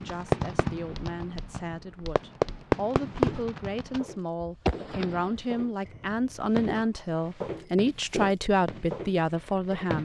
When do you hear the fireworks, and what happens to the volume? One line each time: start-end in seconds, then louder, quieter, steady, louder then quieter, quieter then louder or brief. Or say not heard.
0.0-10.0 louder then quieter.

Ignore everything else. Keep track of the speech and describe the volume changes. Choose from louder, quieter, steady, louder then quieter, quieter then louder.
louder.